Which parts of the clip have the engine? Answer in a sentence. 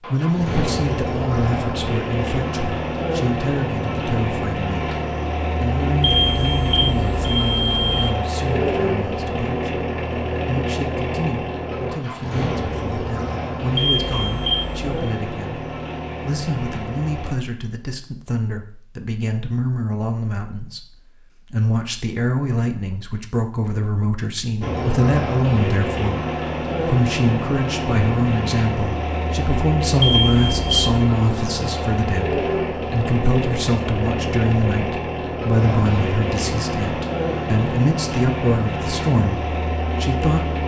The engine can be heard from 0.0 to 17.4 s and from 24.6 to 40.6 s.